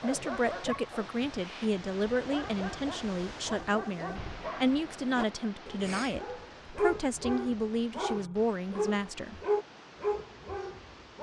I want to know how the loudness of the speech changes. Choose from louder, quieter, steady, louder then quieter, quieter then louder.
steady.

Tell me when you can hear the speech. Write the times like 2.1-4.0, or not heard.
0.0-9.4.